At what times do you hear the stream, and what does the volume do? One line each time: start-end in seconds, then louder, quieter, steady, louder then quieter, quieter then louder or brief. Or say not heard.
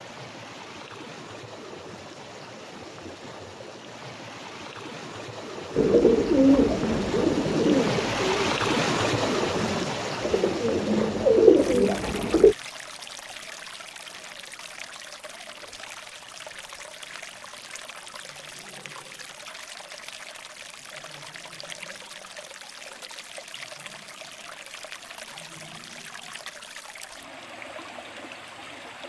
0.0-29.0 louder then quieter.